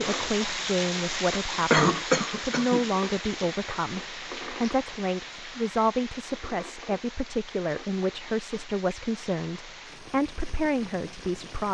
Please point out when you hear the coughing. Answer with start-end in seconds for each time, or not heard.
1.7-2.9.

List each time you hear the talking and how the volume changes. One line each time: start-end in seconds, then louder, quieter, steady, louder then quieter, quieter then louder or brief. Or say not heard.
0.0-11.6 steady.